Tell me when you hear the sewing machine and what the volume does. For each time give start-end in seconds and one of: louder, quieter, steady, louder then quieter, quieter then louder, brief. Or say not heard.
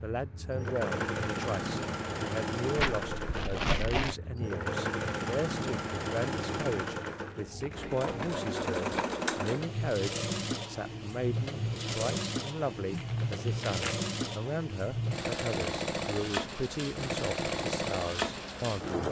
0.0-19.0 steady.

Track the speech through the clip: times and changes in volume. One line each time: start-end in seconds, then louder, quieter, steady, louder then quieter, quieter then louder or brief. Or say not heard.
0.0-19.0 steady.